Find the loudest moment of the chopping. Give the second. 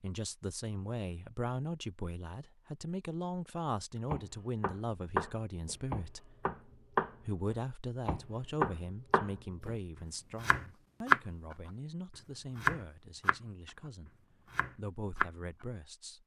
11 s.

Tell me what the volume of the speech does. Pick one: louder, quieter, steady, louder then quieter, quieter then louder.
quieter.